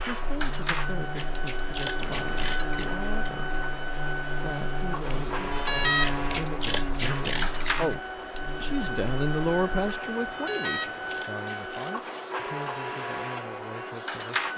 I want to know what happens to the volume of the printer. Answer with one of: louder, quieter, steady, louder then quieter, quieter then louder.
steady.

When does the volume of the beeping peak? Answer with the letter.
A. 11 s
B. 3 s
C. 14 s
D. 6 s
D.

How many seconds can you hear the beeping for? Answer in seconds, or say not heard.
3 s.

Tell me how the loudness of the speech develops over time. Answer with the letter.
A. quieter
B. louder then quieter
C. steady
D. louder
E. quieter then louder
B.